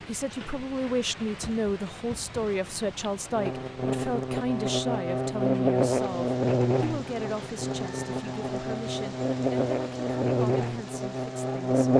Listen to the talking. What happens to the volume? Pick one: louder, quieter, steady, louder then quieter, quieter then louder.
quieter.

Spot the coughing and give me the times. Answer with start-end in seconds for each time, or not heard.
not heard.